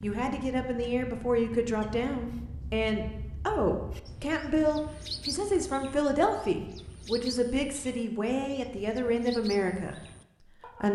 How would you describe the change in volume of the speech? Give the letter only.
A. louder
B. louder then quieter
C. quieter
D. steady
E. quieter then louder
D.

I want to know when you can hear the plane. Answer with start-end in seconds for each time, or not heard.
not heard.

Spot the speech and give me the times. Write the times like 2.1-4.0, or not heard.
0.0-9.9.